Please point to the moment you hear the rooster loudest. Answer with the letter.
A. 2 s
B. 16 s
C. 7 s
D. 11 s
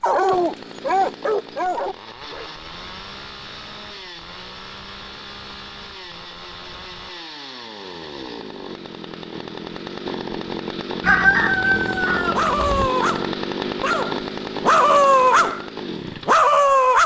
D.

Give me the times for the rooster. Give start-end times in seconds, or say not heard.
11.0-12.9.